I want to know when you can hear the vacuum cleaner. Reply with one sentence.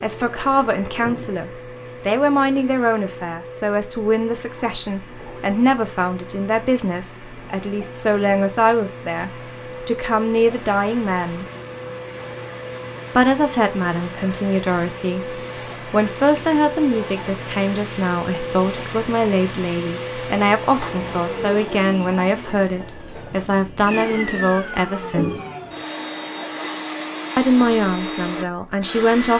The vacuum cleaner can be heard from 0.0 to 29.3 s.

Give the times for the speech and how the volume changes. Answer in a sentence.
The speech can be heard from 0.0 to 11.4 s, at a steady volume; from 13.2 to 25.4 s, at a steady volume; and briefly from 27.4 to 29.3 s.